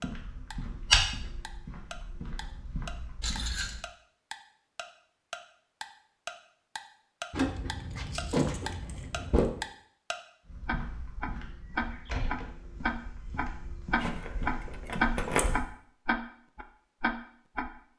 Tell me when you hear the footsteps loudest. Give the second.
1 s.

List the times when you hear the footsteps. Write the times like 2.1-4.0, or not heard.
0.0-3.8, 10.4-15.7.